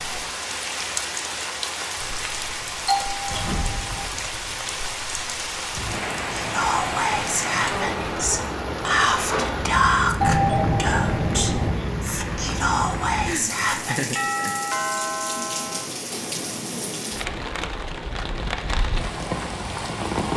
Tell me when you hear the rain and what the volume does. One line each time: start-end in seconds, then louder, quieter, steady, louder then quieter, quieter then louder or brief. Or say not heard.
0.0-20.3 steady.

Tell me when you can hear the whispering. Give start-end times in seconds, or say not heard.
6.3-14.2.